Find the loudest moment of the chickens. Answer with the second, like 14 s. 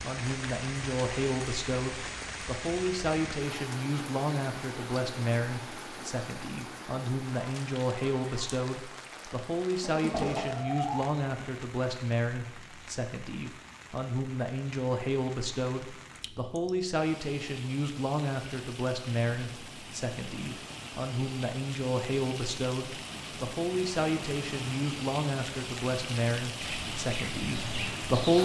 10 s.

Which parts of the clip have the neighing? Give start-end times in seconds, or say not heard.
not heard.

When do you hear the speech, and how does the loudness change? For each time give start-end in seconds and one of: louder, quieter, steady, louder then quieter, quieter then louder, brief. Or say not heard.
0.0-28.3 steady.